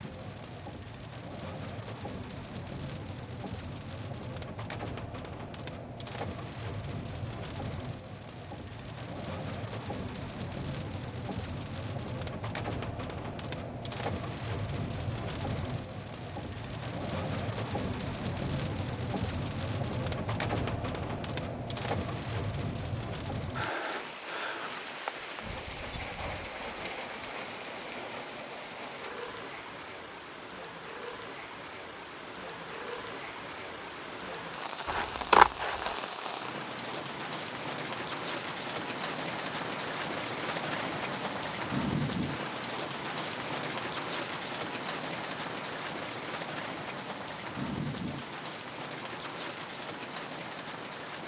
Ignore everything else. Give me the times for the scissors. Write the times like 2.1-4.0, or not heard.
34.9-36.0.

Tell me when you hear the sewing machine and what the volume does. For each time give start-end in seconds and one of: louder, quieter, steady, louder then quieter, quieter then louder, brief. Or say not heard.
not heard.